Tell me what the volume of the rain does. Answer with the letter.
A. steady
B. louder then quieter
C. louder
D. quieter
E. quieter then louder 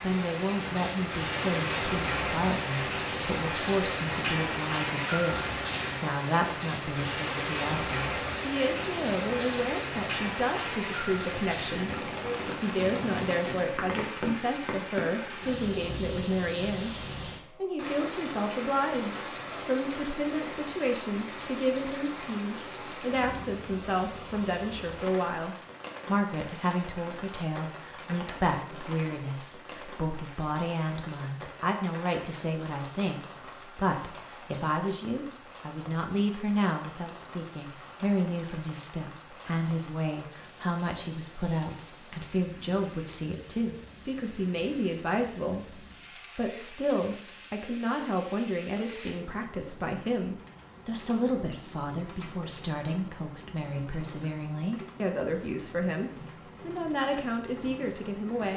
D.